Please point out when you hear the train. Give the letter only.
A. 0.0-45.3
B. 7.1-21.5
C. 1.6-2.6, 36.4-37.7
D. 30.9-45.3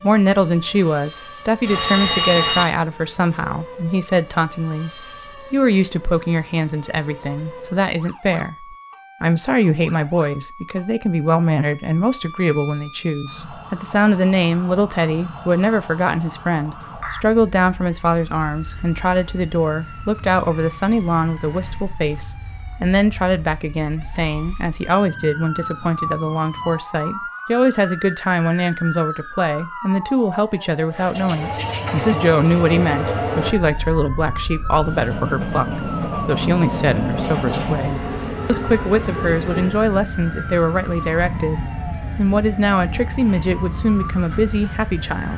D.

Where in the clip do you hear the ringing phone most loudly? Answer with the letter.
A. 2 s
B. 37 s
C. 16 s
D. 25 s
A.